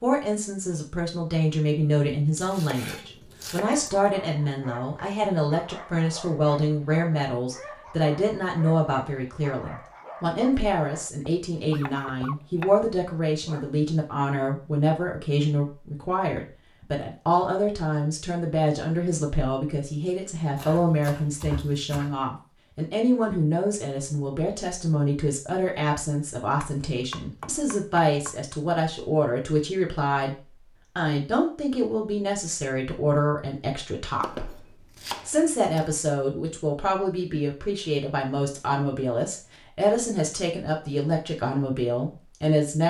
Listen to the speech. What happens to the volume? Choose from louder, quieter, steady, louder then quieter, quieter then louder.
steady.